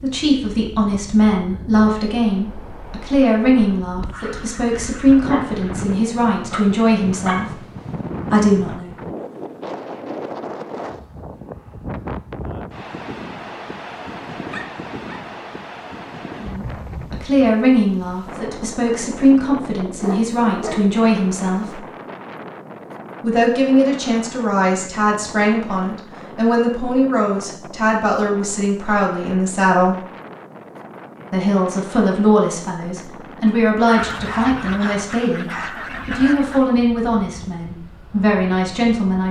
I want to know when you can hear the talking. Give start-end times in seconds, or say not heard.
0.0-7.5, 8.3-8.9, 16.4-21.8, 23.2-29.9, 31.3-35.5, 36.0-39.2.